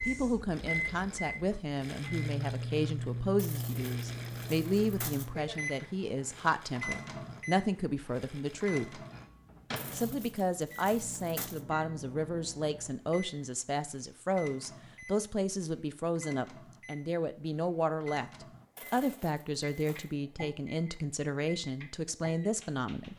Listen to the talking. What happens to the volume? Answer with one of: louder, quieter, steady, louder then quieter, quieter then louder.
steady.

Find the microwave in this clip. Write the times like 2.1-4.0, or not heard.
0.0-23.1.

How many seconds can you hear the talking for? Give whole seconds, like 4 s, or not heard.
22 s.